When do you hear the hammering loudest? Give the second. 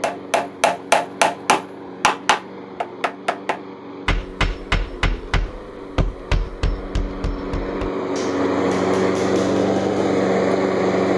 1 s.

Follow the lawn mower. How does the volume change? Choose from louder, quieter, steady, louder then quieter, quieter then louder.
louder.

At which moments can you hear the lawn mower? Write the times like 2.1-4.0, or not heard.
0.0-11.1.